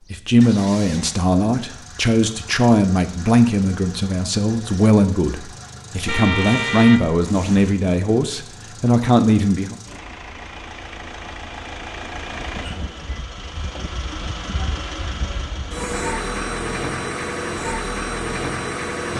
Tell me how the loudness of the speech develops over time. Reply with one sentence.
The volume of the speech stays about the same.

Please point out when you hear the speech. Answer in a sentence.
The speech can be heard from 0.1 to 9.8 s.